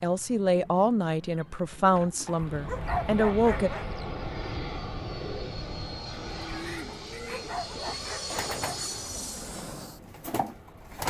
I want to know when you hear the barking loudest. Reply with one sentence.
The volume of the barking peaks at 3 seconds.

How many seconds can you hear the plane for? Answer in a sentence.
You can hear the plane for 9 seconds altogether.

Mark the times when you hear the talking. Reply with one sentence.
You can hear the talking from 0.0 to 3.7 s.